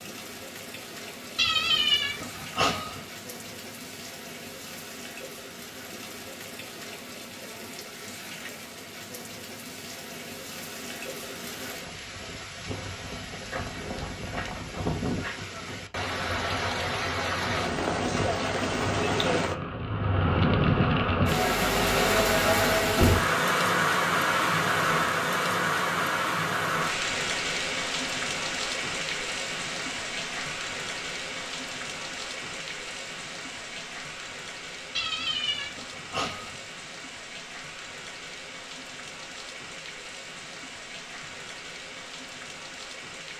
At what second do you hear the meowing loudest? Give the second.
2 s.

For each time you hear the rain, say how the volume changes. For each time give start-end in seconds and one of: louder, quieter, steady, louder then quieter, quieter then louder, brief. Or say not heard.
0.0-43.3 louder then quieter.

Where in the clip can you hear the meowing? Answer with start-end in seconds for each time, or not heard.
1.4-3.0, 35.0-36.6.